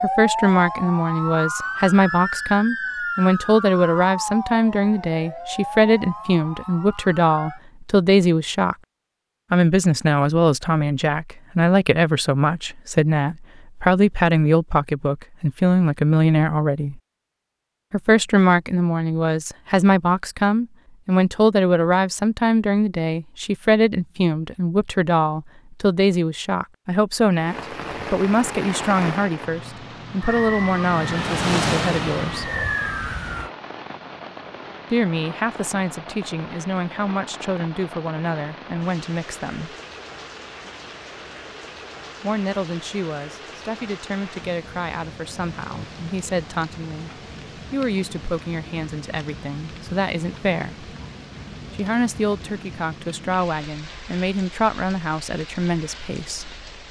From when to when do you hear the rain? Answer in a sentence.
You can hear the rain from 27.4 to 56.8 s.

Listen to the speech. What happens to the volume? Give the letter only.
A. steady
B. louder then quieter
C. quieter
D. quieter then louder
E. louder
C.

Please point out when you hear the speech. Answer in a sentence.
The speech can be heard from 0.0 to 8.8 s, from 9.5 to 17.0 s, from 17.9 to 32.5 s, from 34.9 to 39.8 s, from 42.2 to 50.9 s and from 51.7 to 56.5 s.